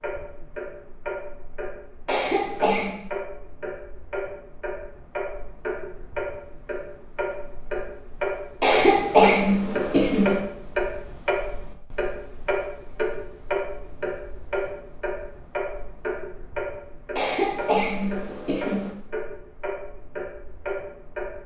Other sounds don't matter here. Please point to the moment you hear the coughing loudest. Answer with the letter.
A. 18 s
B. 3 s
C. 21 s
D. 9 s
D.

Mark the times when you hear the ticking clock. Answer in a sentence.
You can hear the ticking clock from 0.0 to 21.4 s.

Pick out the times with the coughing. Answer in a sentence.
You can hear the coughing from 2.0 to 3.0 s, from 8.6 to 10.4 s and from 17.1 to 18.9 s.